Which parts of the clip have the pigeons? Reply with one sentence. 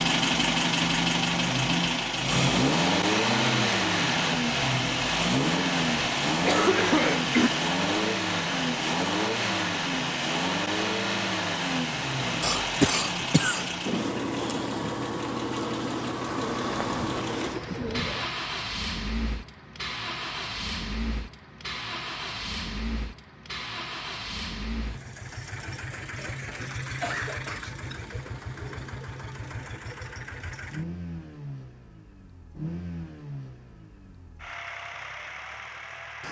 The pigeons can be heard from 16.2 to 18.3 s.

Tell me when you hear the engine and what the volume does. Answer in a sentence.
The engine can be heard from 0.0 to 36.2 s, getting quieter.